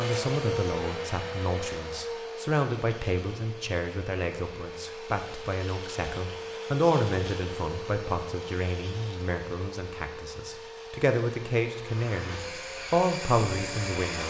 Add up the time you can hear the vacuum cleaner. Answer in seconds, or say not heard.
14 s.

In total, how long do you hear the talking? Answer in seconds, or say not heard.
14 s.